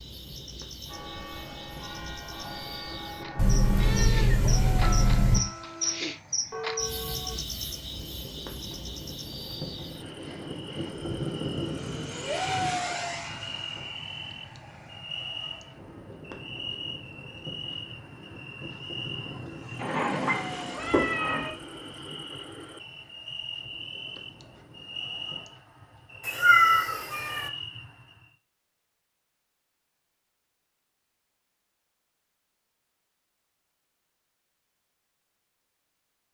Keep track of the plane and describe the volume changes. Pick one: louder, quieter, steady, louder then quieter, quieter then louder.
louder then quieter.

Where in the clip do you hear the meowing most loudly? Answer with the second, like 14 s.
27 s.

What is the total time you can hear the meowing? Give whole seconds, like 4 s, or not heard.
5 s.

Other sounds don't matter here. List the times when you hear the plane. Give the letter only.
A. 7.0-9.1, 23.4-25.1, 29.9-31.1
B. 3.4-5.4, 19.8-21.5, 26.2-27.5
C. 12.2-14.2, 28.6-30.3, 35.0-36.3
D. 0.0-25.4
D.